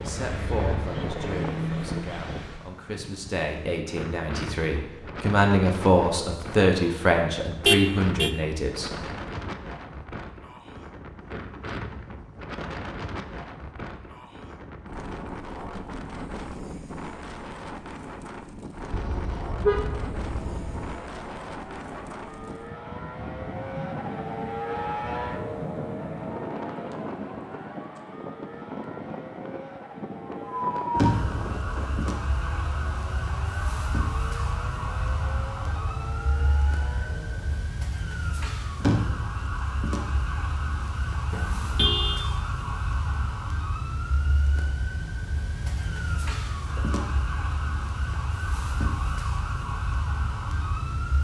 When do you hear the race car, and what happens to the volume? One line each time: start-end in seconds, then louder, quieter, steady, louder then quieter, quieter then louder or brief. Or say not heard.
0.0-2.7 brief
18.9-37.5 louder then quieter.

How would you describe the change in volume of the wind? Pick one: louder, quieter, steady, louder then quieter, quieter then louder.
steady.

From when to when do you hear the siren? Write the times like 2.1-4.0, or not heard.
30.5-51.1.